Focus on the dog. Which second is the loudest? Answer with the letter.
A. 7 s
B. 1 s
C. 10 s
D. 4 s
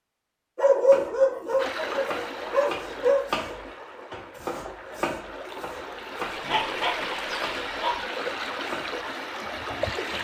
B.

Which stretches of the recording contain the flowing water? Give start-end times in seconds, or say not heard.
1.6-10.1.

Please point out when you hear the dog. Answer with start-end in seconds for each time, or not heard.
0.6-3.2, 6.2-8.0.